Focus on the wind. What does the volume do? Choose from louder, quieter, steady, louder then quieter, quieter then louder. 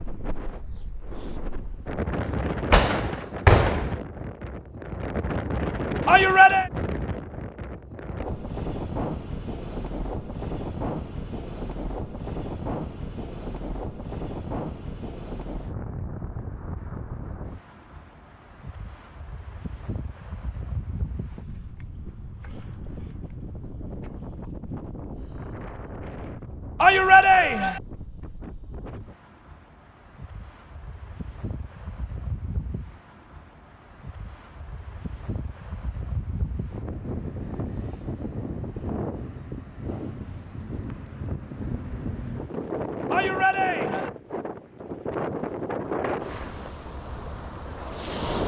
quieter then louder.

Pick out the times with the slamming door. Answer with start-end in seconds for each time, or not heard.
2.2-3.9.